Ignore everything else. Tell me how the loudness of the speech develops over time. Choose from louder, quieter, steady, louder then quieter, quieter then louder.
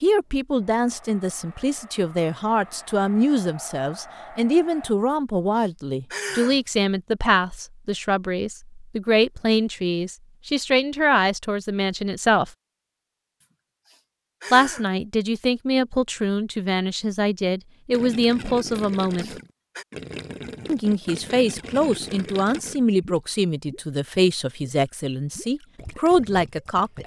steady.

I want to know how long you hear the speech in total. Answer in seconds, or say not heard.
24 s.